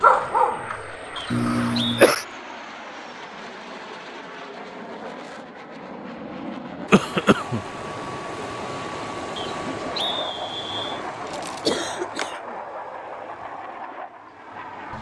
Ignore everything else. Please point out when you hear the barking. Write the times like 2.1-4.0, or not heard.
0.0-1.5.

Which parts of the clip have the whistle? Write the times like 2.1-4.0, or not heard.
1.1-2.1, 9.3-11.0.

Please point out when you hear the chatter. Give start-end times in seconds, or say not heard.
not heard.